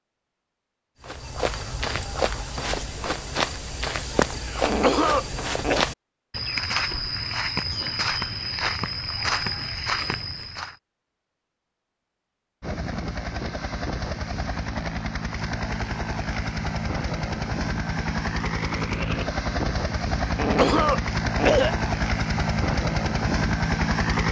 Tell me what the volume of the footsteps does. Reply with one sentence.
The volume of the footsteps stays about the same.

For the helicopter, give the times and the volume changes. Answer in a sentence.
You can hear the helicopter from 12.6 to 24.2 s, getting louder.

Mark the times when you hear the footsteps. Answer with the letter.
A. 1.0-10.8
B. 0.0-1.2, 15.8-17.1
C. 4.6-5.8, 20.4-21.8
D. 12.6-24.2
A.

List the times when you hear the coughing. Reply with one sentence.
You can hear the coughing from 4.6 to 5.8 s and from 20.4 to 21.8 s.